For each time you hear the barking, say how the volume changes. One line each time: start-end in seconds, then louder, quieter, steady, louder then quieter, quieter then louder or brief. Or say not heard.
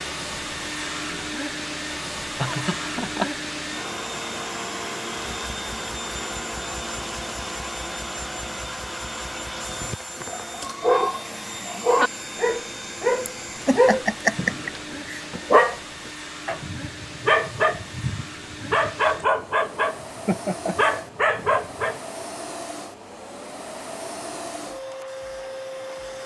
10.2-22.0 steady.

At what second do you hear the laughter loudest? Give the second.
14 s.